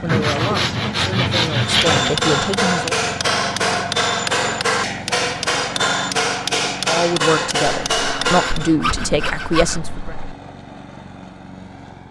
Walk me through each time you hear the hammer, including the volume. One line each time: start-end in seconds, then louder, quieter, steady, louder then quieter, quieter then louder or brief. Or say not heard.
1.6-8.7 steady.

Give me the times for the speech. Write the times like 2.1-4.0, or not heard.
0.0-3.0, 6.8-10.2.